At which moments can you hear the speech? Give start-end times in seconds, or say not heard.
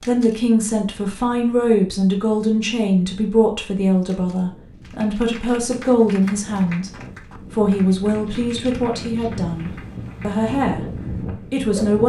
0.0-6.9, 7.5-12.0.